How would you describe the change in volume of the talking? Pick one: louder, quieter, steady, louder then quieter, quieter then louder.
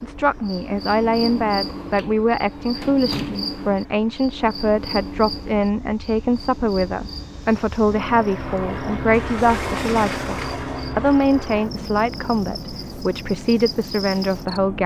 steady.